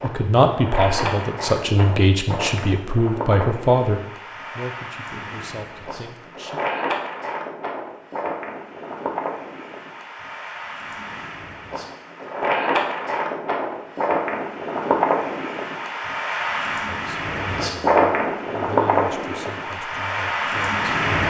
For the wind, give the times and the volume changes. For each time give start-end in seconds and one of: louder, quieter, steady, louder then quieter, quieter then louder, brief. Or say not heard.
0.0-21.2 louder.